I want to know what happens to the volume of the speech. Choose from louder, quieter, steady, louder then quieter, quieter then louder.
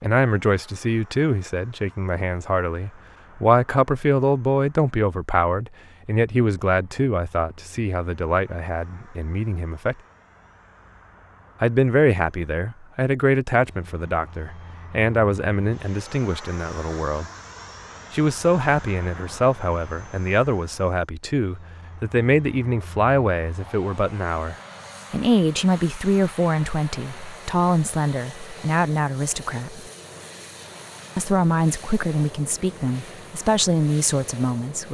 steady.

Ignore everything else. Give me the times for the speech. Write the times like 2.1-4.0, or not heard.
0.0-9.9, 11.6-17.3, 18.1-29.8, 31.1-34.8.